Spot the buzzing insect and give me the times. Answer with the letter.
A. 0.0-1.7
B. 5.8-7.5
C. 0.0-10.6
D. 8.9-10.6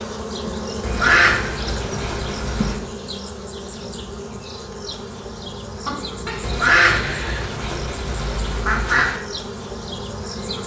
C.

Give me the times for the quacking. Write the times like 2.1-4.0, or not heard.
0.8-2.8, 6.4-9.2.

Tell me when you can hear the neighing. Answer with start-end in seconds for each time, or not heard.
5.8-7.5.